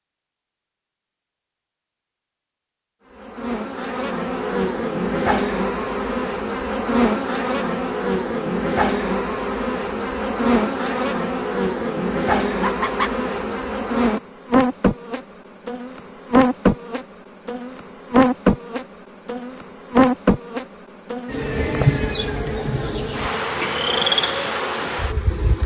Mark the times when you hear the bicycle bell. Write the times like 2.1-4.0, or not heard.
not heard.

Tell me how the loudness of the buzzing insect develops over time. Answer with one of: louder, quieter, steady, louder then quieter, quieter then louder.
steady.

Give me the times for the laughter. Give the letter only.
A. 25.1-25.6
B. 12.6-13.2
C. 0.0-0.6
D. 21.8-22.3
B.